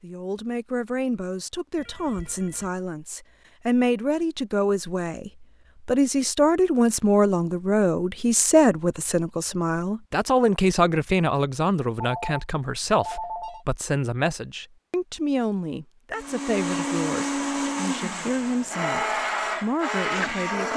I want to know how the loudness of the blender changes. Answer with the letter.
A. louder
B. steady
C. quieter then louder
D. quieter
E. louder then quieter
C.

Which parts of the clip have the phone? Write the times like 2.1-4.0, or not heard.
1.8-2.7, 12.0-13.7.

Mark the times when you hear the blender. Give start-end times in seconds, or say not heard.
16.1-20.7.